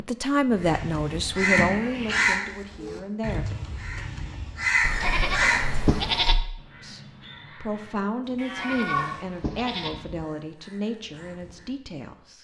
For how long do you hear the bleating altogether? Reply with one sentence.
The bleating can be heard for 4 seconds in total.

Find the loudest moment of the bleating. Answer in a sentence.
The volume of the bleating peaks at 6 seconds.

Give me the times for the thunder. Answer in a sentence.
You can't hear the thunder here.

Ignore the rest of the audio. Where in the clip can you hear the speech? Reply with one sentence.
You can hear the speech from 0.0 to 3.5 s and from 6.8 to 12.4 s.